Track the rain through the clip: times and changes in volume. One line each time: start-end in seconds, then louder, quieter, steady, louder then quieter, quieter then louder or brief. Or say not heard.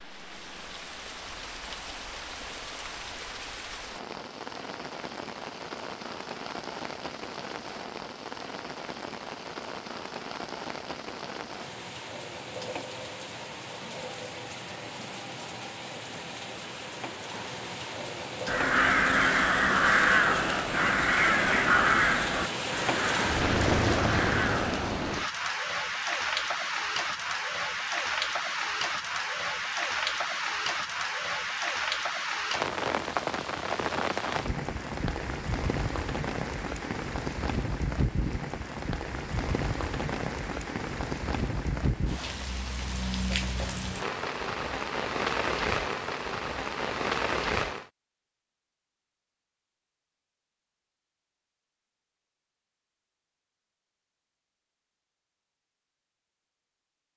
0.0-47.9 louder.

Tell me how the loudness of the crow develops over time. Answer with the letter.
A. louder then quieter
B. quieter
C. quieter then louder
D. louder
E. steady
B.